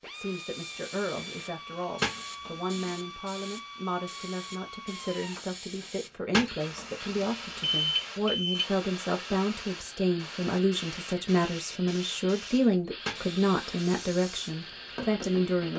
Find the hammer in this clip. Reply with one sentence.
You can't hear the hammer here.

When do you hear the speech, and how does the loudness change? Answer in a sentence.
The speech can be heard from 0.0 to 15.7 s, getting louder.